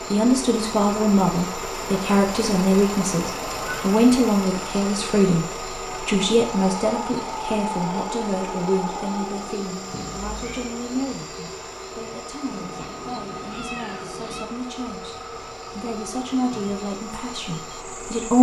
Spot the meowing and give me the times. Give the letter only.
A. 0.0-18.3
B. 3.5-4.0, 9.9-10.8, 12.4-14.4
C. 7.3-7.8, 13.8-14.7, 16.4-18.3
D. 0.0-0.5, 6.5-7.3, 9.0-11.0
B.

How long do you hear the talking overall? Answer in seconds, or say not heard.
18 s.